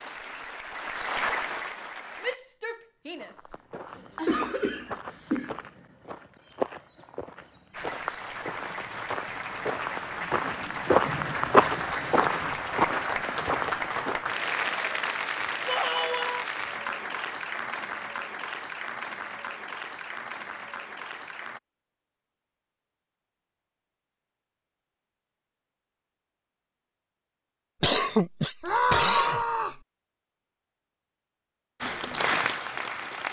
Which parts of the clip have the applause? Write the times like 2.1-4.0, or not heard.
0.0-2.4, 7.7-21.6, 31.8-33.2.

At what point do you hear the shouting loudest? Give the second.
29 s.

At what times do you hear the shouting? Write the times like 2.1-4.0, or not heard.
2.2-3.5, 15.7-16.4, 28.6-29.8.